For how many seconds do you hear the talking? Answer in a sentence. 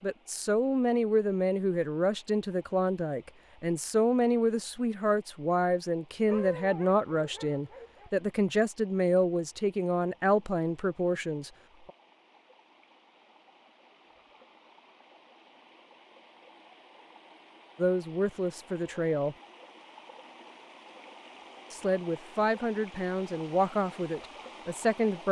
You can hear the talking for 17 seconds altogether.